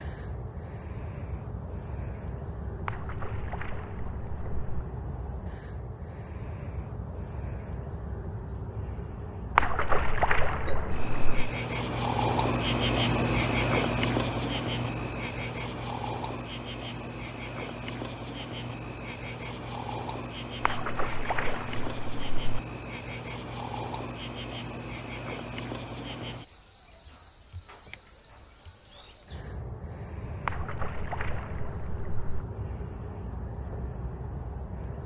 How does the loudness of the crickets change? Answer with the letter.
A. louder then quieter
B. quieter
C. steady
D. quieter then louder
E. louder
A.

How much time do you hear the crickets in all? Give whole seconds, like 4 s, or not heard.
35 s.